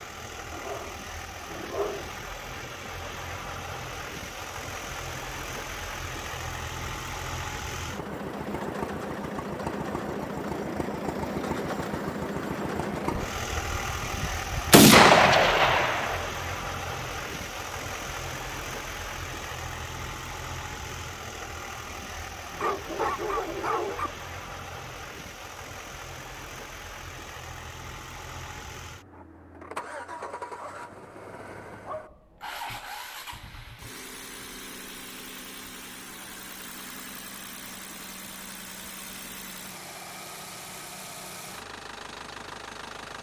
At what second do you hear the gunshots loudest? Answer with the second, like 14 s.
15 s.